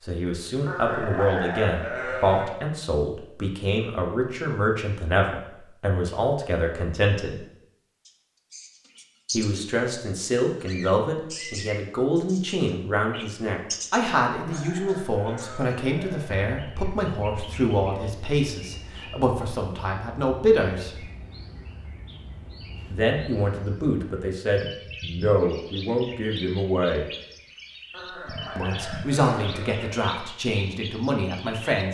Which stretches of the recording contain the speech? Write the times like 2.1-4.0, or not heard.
0.1-7.4, 9.3-21.1, 22.9-27.1, 28.6-31.9.